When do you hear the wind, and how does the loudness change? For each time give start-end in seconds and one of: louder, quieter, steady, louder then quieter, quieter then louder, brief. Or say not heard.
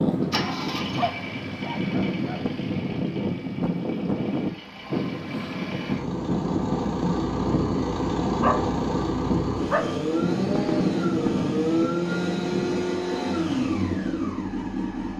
0.0-12.8 steady.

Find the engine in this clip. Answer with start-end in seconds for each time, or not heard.
0.0-15.1.